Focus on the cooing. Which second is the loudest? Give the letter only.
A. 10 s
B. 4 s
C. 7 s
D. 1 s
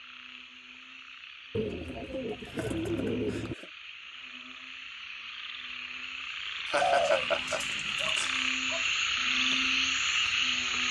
C.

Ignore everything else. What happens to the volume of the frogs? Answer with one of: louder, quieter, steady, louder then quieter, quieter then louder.
louder.